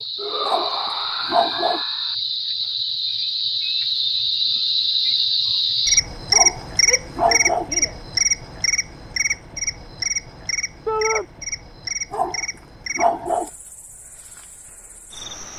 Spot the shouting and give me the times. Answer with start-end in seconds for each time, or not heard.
0.1-2.1, 6.8-8.0, 10.8-11.2.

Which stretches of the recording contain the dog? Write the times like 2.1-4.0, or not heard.
0.5-1.8, 6.3-7.7, 12.1-13.5.